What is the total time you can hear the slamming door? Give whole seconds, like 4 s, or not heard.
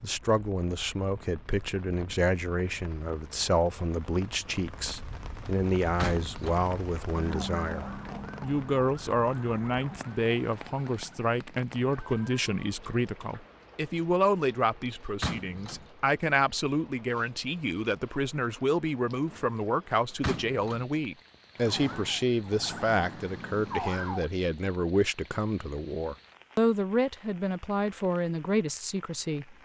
2 s.